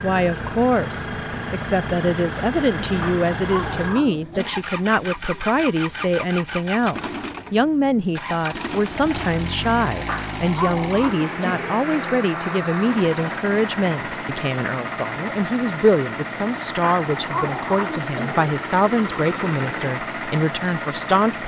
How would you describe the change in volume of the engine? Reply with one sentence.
The loudness of the engine stays about the same.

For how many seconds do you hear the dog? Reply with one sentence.
The dog can be heard for 5 seconds in total.